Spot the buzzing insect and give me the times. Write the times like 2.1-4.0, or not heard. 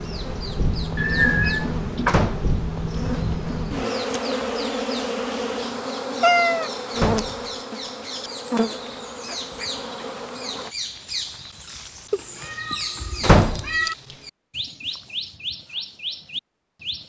0.0-10.7.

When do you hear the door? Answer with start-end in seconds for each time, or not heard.
2.0-2.5, 7.0-7.4, 13.2-13.7.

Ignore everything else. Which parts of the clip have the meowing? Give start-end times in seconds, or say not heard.
0.9-2.3, 6.2-6.7, 12.1-13.9.